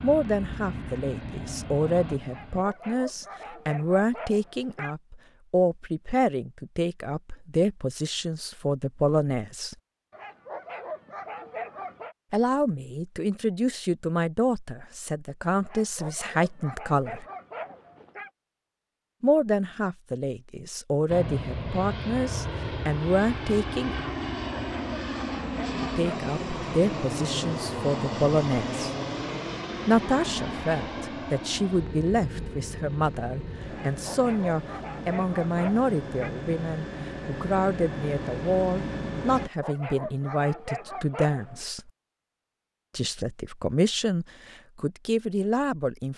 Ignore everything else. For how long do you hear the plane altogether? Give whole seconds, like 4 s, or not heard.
21 s.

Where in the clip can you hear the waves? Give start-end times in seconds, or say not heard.
not heard.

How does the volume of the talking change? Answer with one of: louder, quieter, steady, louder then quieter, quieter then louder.
steady.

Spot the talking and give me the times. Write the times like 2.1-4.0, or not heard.
0.0-9.8, 12.3-17.2, 19.2-24.1, 25.8-28.9, 29.9-41.9, 43.0-46.1.